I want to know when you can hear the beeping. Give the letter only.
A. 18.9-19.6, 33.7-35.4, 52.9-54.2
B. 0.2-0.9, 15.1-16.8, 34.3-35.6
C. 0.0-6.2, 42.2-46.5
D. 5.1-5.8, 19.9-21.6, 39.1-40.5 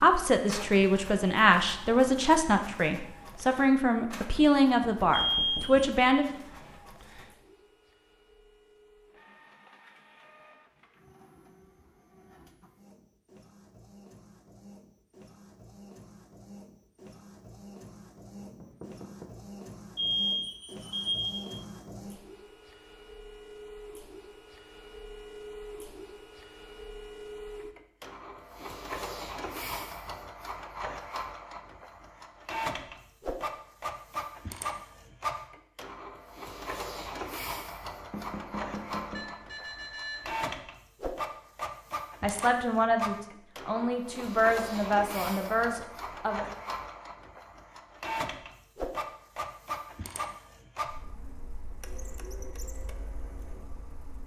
D.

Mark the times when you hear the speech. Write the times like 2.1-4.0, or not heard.
0.0-6.2, 42.2-46.5.